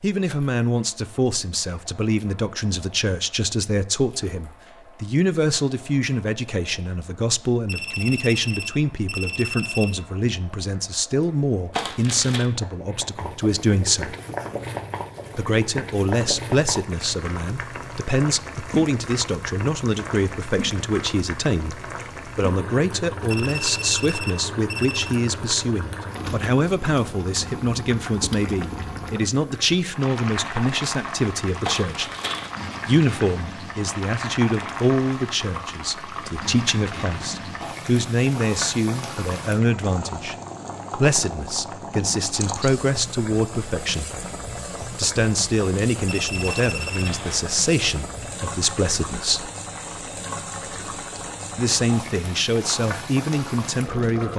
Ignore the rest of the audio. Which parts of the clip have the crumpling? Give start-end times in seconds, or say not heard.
11.7-12.4, 31.6-32.5, 46.5-47.5.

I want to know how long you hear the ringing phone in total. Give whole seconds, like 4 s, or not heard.
5 s.